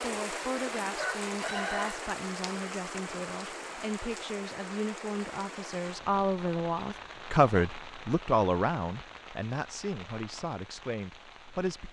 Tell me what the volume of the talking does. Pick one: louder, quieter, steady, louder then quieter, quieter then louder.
louder then quieter.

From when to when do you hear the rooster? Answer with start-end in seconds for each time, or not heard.
0.9-2.0.